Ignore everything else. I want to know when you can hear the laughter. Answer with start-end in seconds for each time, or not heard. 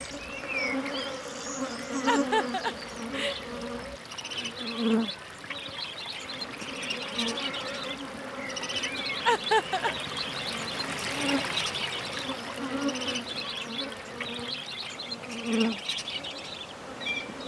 2.0-3.4, 9.2-9.9.